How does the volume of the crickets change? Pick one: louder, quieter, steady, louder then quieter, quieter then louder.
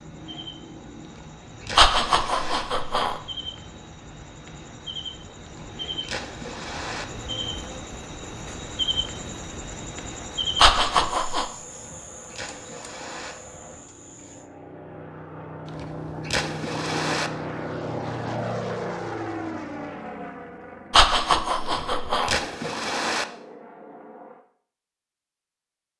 louder then quieter.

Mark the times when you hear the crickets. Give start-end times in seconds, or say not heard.
0.0-14.5.